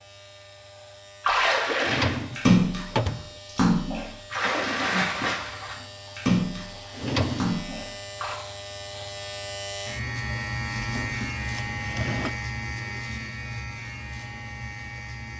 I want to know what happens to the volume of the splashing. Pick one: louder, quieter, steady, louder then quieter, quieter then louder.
quieter.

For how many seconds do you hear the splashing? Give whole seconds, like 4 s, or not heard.
7 s.